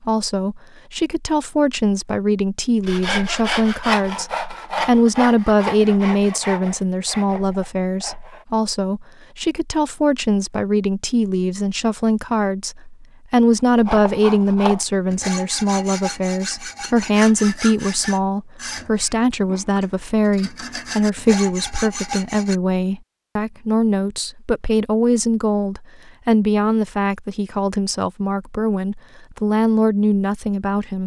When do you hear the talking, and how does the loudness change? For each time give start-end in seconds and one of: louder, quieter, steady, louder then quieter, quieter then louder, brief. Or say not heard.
0.0-31.0 steady.